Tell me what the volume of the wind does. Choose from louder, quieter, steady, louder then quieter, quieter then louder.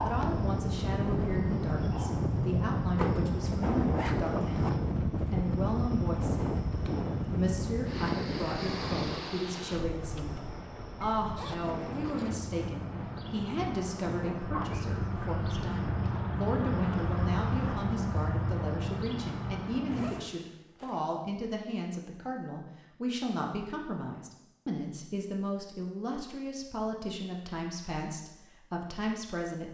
quieter.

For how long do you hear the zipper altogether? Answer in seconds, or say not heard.
4 s.